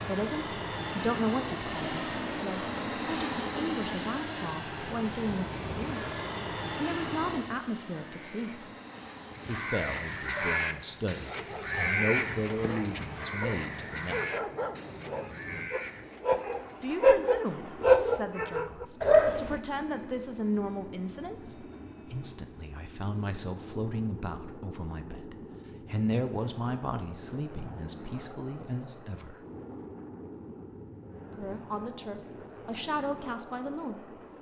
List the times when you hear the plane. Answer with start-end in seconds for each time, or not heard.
0.0-34.3.